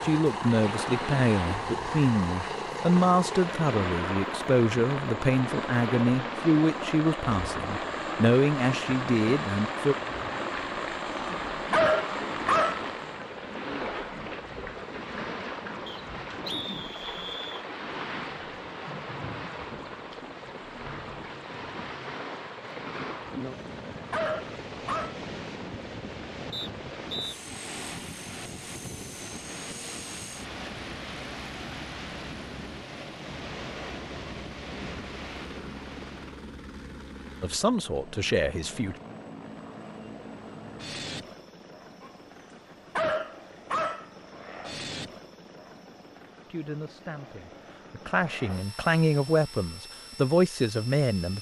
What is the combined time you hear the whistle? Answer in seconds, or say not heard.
3 s.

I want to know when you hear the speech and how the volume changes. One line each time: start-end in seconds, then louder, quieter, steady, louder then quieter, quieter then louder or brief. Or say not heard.
0.0-9.9 steady
37.4-39.0 brief
46.5-51.3 louder.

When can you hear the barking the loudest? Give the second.
12 s.